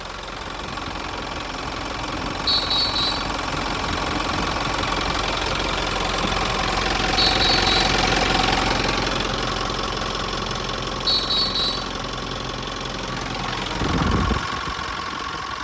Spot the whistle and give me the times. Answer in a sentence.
The whistle can be heard from 2.5 to 3.3 s, from 7.2 to 7.8 s and from 11.1 to 11.9 s.